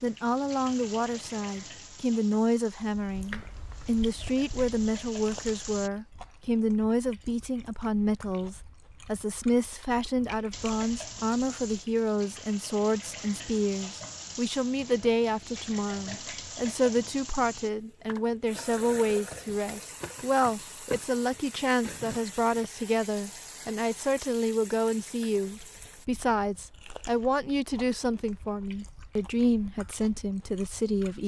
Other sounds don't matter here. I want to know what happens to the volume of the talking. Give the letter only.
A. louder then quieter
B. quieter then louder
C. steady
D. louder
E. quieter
C.